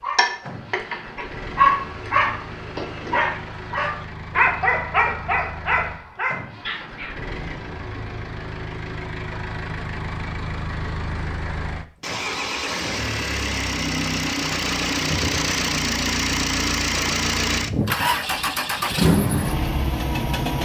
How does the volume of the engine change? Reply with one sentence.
The volume of the engine goes up.